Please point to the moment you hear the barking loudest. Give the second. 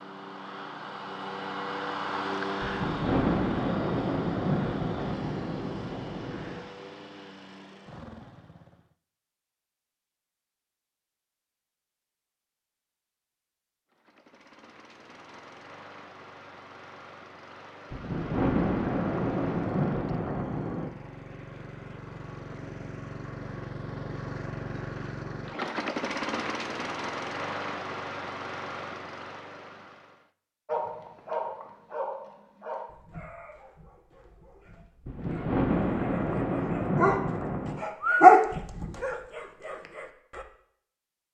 38 s.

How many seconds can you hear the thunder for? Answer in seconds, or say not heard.
10 s.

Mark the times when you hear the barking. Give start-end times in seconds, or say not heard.
30.6-40.5.